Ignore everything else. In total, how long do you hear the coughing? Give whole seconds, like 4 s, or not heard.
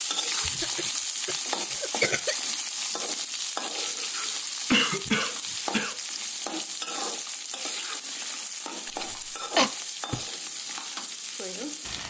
4 s.